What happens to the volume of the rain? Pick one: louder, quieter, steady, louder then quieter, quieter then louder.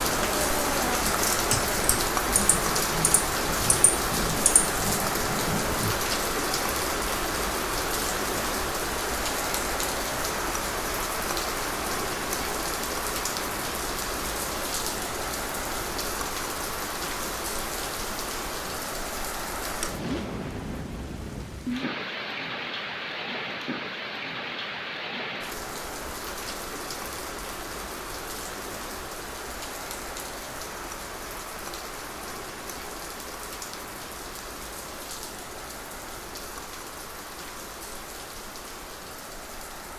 quieter.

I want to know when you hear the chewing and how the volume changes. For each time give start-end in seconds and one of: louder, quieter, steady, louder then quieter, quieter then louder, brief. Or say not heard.
not heard.